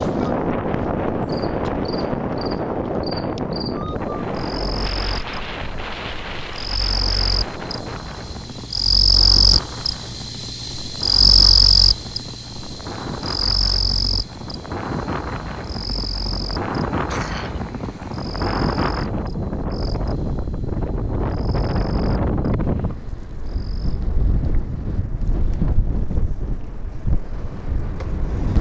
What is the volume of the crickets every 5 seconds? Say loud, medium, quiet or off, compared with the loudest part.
quiet, loud, loud, quiet, quiet, off.